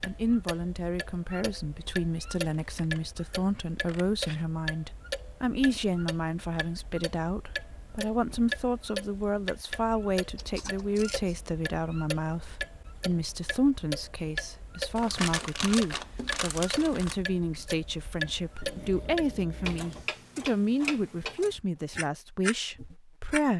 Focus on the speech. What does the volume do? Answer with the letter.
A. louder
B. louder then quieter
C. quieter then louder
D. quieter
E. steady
E.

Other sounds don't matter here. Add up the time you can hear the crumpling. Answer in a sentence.
You can hear the crumpling for 2 seconds altogether.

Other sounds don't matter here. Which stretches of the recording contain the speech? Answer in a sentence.
The speech can be heard from 0.0 to 23.5 s.